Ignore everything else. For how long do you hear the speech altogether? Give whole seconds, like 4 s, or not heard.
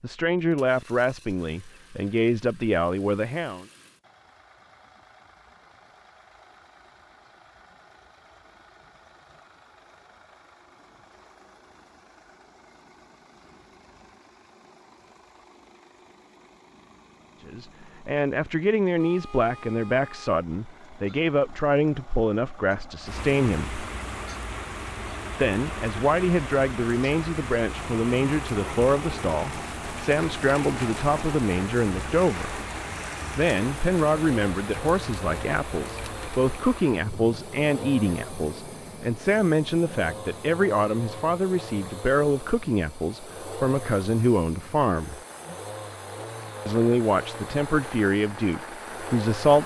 32 s.